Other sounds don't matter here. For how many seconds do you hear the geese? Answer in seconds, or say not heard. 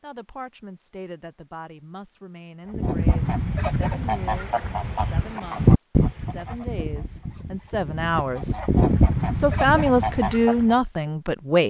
8 s.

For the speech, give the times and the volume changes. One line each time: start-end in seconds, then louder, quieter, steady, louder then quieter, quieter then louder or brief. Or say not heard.
0.0-8.6 louder
9.3-11.6 brief.